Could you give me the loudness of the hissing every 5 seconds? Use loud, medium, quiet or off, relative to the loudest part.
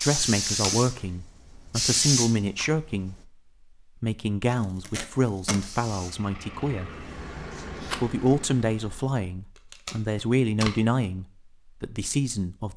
loud, quiet, off.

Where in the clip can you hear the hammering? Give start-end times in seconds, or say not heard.
not heard.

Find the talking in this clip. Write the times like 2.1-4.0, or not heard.
0.0-3.3, 4.0-6.9, 8.0-12.7.